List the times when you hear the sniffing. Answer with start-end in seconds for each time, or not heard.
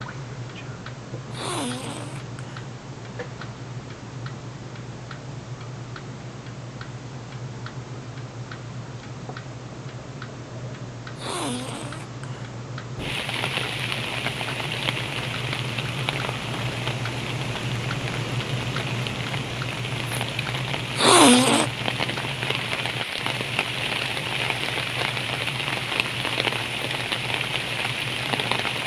1.3-2.6, 11.2-12.6, 20.9-21.7.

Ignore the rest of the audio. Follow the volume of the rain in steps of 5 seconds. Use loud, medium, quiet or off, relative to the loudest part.
off, off, loud, medium, loud, loud.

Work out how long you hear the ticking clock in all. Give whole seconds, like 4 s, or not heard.
29 s.